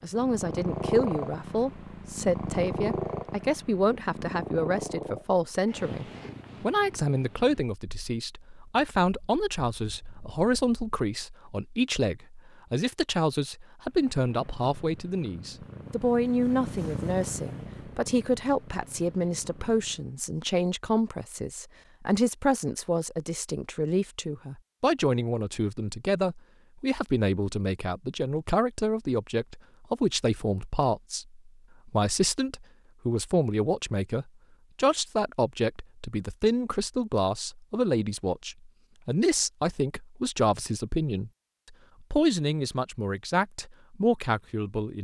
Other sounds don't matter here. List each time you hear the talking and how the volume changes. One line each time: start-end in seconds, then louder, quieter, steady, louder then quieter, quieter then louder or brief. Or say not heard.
0.0-41.3 steady
42.0-44.9 brief.